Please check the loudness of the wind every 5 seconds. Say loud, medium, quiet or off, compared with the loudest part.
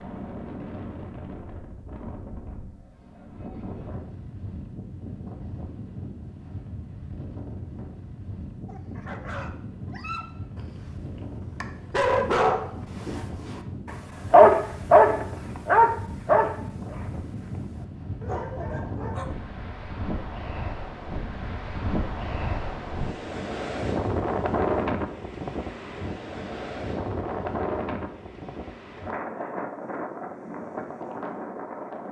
medium, medium, medium, medium, loud, loud, medium.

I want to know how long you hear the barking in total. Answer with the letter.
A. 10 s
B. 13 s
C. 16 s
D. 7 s
A.